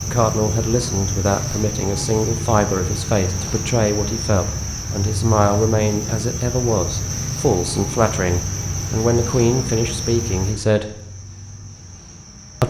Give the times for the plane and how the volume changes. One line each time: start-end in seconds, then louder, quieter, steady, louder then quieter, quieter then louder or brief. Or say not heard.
not heard.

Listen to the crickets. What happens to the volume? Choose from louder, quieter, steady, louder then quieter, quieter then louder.
quieter.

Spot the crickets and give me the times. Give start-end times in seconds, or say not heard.
0.0-12.6.